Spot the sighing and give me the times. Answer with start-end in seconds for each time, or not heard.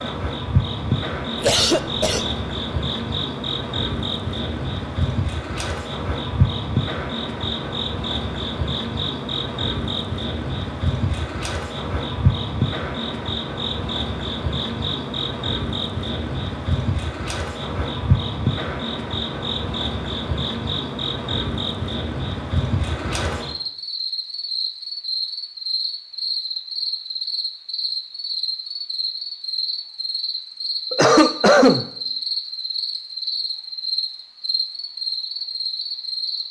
not heard.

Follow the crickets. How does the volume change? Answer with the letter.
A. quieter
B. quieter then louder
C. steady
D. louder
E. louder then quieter
C.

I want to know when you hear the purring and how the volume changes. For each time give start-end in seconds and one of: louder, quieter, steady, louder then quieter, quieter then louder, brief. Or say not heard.
not heard.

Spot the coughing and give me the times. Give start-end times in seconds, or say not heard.
1.4-2.3, 30.9-31.9.